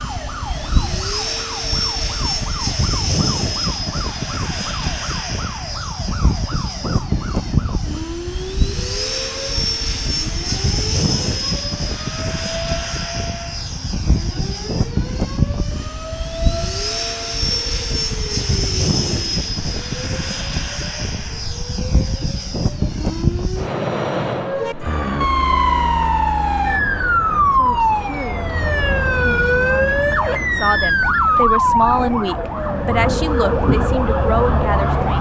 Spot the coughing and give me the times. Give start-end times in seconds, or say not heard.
not heard.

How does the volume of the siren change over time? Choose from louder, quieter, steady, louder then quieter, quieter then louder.
louder.